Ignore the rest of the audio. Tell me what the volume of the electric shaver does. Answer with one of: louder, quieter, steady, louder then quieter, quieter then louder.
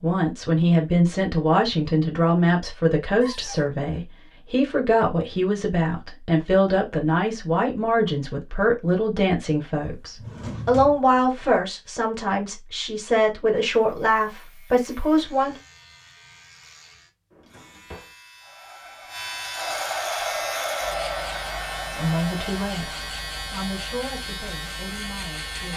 louder.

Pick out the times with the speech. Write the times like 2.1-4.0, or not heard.
0.0-15.6, 21.9-25.7.